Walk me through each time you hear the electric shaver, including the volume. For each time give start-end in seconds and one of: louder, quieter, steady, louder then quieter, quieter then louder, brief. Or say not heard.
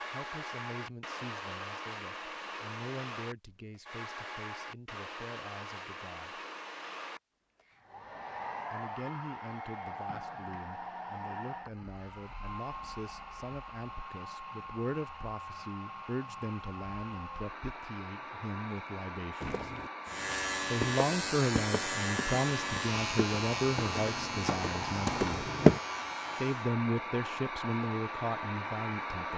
20.1-26.8 quieter.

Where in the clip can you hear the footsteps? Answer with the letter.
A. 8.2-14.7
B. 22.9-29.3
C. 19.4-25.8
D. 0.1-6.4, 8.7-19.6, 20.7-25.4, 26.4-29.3
C.